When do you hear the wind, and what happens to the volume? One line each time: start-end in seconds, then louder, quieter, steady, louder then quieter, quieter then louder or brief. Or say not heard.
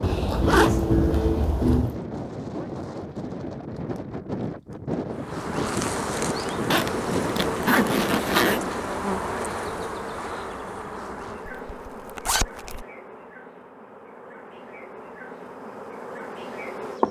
0.0-8.8 steady.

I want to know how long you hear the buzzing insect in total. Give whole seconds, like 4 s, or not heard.
12 s.